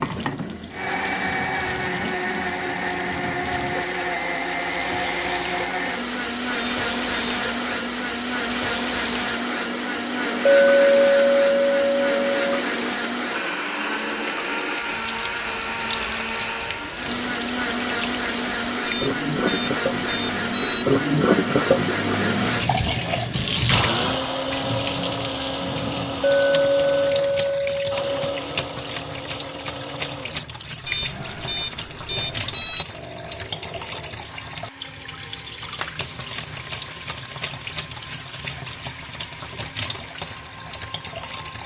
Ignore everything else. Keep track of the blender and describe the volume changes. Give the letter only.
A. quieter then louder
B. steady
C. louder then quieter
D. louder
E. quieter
E.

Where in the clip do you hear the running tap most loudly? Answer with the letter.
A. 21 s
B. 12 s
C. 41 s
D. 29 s
A.